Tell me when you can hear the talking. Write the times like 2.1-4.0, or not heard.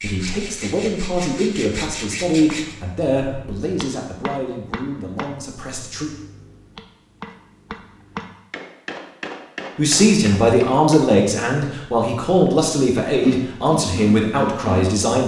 0.0-6.1, 9.8-15.2.